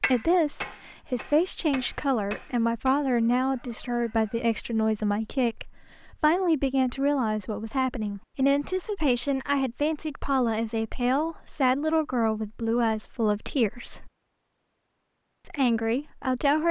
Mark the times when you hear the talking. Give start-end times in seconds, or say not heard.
0.0-14.1, 15.4-16.6.